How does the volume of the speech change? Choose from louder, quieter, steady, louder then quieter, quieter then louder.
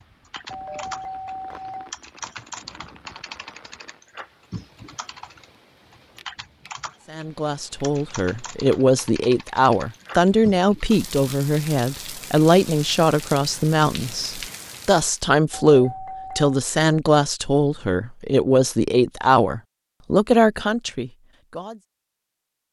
steady.